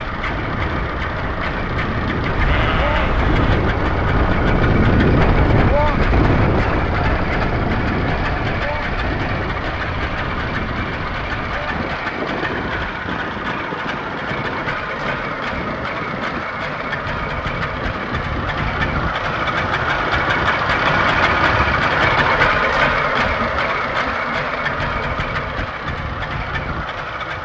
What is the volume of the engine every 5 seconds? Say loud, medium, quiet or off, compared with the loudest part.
medium, medium, medium, medium, loud, medium.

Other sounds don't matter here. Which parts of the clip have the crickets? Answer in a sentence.
You can't hear the crickets here.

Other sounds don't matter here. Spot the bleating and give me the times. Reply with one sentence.
You can hear the bleating from 2.4 to 3.6 s.